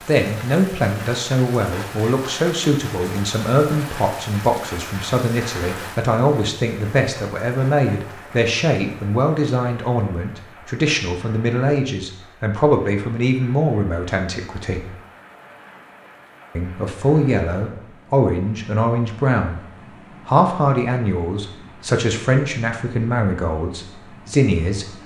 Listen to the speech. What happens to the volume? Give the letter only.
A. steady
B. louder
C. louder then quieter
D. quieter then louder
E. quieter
A.